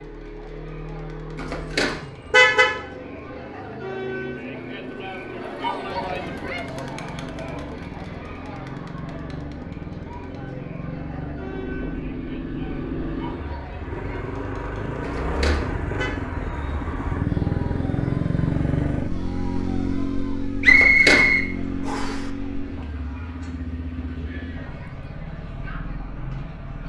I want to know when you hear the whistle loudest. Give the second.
21 s.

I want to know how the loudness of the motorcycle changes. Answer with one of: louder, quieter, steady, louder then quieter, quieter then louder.
louder then quieter.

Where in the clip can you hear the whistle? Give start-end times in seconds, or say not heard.
20.6-22.2.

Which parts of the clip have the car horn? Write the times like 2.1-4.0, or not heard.
1.4-2.8, 15.0-16.1, 20.6-21.2.